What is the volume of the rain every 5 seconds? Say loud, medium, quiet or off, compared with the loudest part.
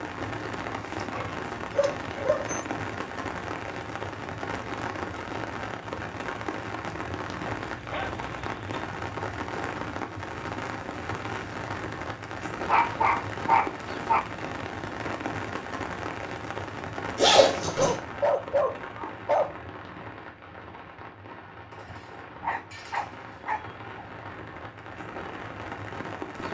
loud, loud, loud, loud, medium, loud.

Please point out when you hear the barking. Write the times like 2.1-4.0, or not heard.
1.1-2.6, 7.5-8.8, 12.7-14.2, 17.6-19.6, 21.9-24.1.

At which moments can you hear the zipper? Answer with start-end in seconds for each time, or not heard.
17.1-17.9.